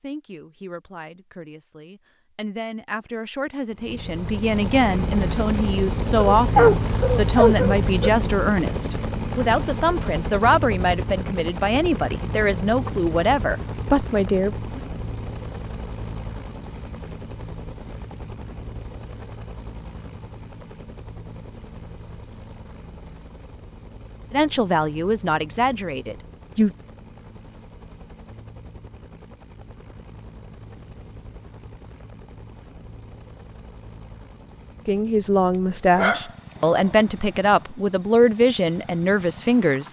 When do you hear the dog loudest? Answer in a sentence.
The volume of the dog peaks at 7 seconds.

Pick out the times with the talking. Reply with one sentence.
The talking can be heard from 0.0 to 14.8 s, from 24.3 to 26.7 s and from 34.9 to 39.8 s.